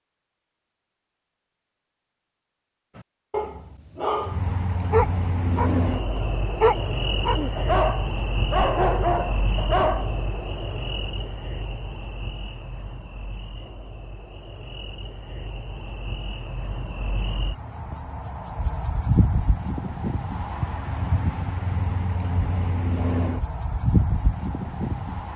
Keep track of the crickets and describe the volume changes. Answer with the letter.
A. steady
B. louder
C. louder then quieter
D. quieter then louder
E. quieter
D.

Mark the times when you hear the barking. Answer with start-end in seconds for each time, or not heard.
3.0-10.1.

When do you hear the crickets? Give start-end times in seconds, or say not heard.
4.2-25.3.